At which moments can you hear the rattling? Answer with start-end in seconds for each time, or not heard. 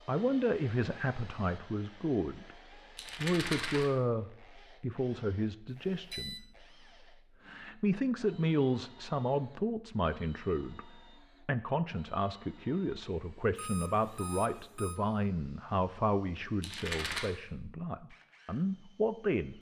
3.0-3.9, 16.6-17.2.